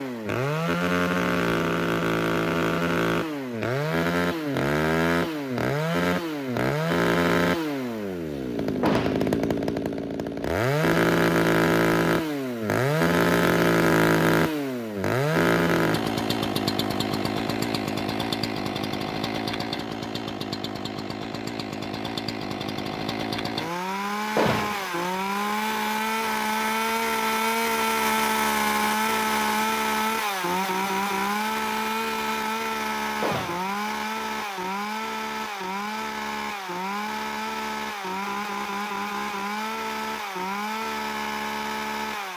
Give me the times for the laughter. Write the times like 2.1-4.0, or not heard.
not heard.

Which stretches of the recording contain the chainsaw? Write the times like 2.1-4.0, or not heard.
0.0-42.3.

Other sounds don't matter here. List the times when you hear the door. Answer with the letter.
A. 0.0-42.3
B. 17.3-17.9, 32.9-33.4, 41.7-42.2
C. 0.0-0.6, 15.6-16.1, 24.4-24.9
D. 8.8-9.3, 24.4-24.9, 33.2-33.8
D.